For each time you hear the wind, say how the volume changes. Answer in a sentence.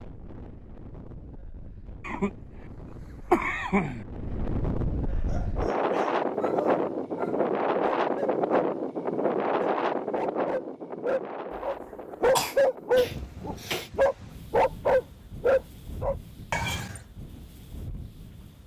You can hear the wind from 0.0 to 18.6 s, getting louder then quieter.